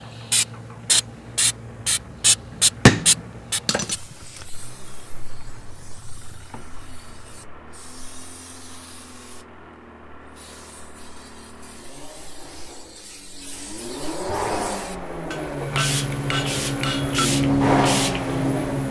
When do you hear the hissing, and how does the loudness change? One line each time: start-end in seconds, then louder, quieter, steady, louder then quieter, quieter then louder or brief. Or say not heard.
0.0-18.8 quieter then louder.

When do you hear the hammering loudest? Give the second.
3 s.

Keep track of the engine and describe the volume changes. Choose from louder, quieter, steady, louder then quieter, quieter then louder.
louder.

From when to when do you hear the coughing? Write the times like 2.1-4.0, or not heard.
not heard.